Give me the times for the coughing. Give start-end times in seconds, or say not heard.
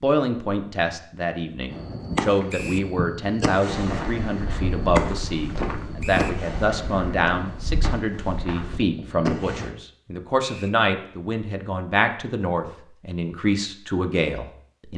not heard.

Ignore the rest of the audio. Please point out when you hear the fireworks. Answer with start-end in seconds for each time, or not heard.
1.7-9.7.